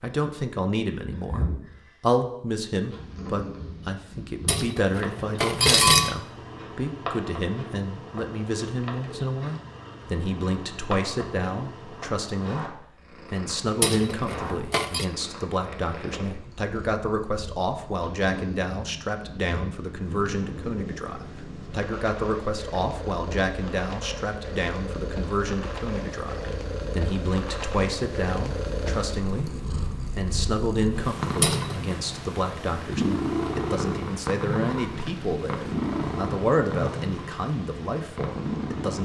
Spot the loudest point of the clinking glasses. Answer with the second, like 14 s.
6 s.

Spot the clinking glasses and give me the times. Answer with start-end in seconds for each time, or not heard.
4.5-6.2, 13.8-15.1, 31.4-31.9.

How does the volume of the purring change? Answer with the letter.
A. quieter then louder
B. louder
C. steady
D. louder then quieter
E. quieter
B.